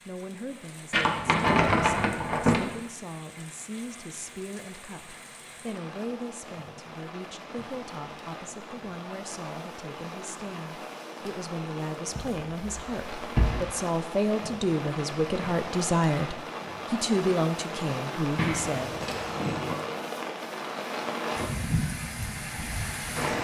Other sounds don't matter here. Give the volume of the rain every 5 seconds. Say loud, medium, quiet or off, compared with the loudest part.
quiet, medium, medium, loud, loud.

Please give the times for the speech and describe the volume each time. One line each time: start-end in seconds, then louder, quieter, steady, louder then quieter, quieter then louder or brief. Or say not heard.
0.1-19.1 louder.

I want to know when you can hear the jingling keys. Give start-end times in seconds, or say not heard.
0.9-2.6, 12.2-13.6, 18.4-19.8.